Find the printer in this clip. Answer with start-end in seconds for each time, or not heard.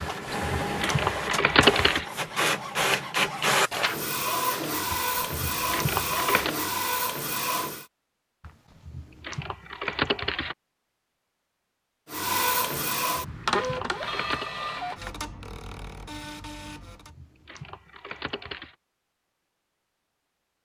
0.0-7.8, 12.1-17.1.